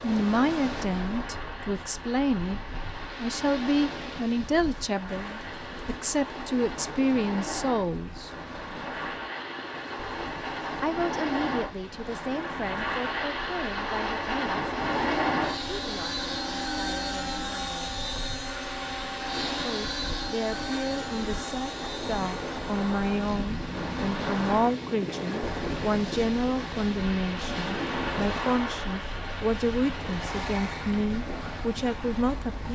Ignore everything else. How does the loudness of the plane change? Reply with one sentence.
The loudness of the plane goes up, then down.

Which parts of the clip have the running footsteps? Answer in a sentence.
The running footsteps can't be heard in this clip.